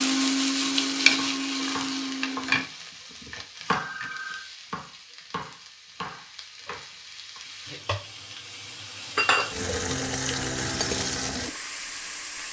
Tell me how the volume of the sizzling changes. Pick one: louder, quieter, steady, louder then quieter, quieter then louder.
quieter then louder.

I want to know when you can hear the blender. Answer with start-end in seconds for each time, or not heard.
0.0-2.6.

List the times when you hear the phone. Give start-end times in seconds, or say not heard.
3.8-4.5.